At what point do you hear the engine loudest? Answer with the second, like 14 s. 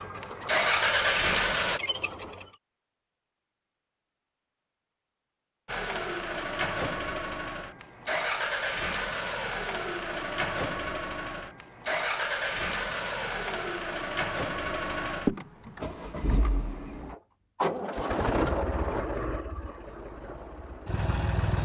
1 s.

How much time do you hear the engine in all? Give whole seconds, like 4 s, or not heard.
18 s.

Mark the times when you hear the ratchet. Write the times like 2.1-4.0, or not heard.
0.0-2.5.